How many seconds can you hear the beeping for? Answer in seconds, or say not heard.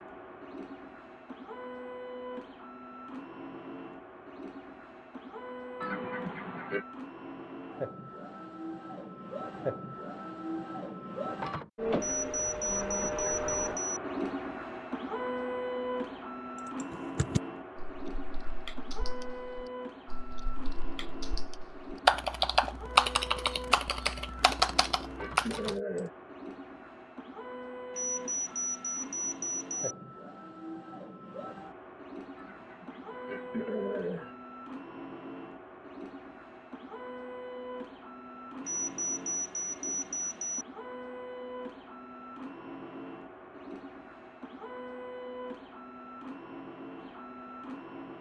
6 s.